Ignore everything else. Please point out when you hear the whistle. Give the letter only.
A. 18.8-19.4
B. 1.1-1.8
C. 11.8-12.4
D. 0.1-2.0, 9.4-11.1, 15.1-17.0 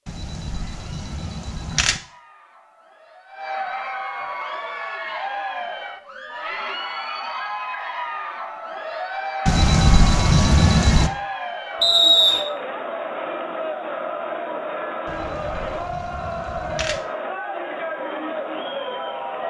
C.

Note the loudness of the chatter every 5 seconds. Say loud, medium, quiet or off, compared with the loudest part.
medium, loud, loud, loud.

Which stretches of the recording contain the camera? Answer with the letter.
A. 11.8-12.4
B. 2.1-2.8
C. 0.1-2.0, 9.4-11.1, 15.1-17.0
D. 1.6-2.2
C.